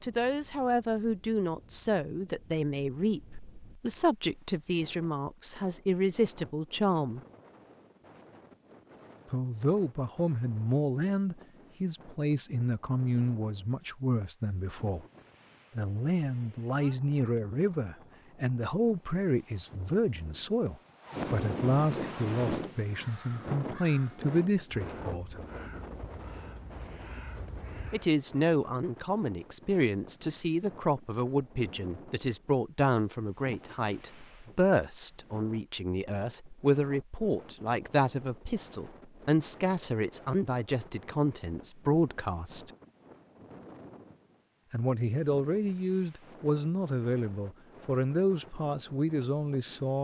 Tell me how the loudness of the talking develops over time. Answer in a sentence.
The loudness of the talking stays about the same.